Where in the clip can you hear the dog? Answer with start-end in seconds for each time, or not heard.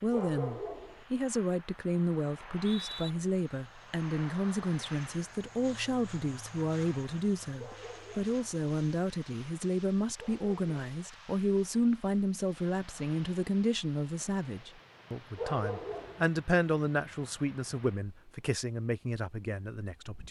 0.1-1.1, 7.5-8.3, 10.2-10.9, 15.3-16.3.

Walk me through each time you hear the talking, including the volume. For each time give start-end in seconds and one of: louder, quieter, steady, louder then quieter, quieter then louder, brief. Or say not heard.
0.0-20.2 steady.